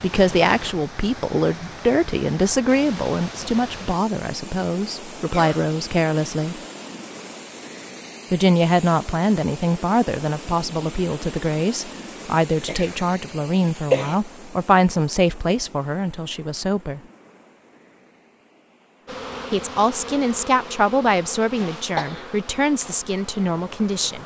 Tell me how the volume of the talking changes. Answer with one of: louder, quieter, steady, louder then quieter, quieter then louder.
steady.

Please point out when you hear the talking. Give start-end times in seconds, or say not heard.
0.0-6.6, 8.3-17.0, 19.5-24.2.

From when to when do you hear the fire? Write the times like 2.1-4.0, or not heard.
not heard.